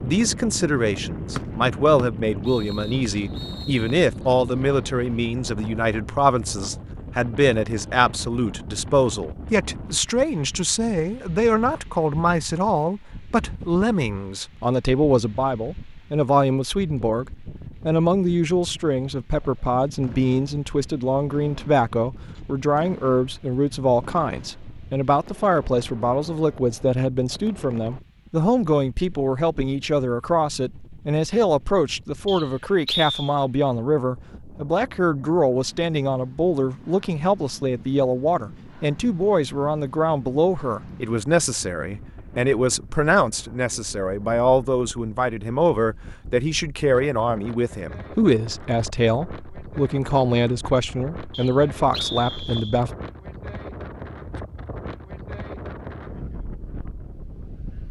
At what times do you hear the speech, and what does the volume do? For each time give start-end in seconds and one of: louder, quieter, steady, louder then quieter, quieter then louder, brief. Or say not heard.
0.0-52.9 steady.